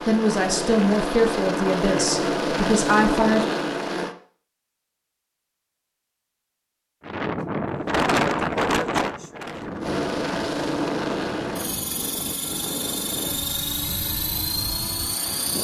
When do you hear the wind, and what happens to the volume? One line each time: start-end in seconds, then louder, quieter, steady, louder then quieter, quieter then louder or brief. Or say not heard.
7.0-15.5 quieter.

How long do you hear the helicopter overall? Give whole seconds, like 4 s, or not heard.
10 s.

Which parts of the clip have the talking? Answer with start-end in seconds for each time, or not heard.
0.1-3.5.